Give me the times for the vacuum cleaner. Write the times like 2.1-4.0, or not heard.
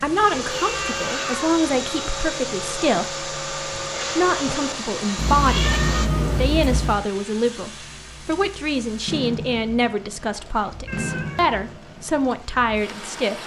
0.0-6.1.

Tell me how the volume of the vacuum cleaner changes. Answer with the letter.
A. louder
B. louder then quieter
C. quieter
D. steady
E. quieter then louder
D.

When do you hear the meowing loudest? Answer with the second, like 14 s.
6 s.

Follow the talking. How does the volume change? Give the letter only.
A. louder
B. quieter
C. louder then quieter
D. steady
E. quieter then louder
D.